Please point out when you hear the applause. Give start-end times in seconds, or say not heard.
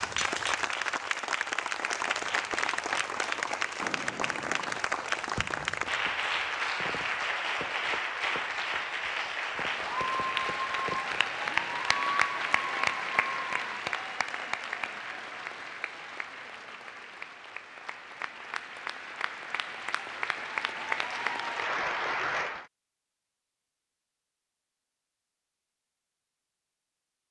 0.0-22.6.